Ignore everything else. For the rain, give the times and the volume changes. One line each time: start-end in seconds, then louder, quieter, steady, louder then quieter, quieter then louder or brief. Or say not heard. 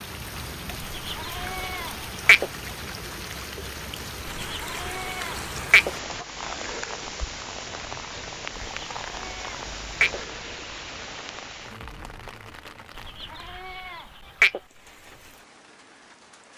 0.0-16.5 quieter.